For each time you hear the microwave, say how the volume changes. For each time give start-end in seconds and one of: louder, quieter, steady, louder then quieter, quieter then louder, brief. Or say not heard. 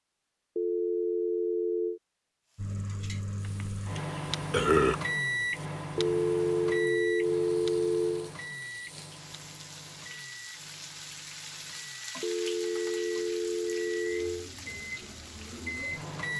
2.5-16.3 quieter then louder.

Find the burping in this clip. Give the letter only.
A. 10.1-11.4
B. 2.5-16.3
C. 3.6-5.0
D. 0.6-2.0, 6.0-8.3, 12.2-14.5
C.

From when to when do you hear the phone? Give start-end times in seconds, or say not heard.
0.6-2.0, 6.0-8.3, 12.2-14.5.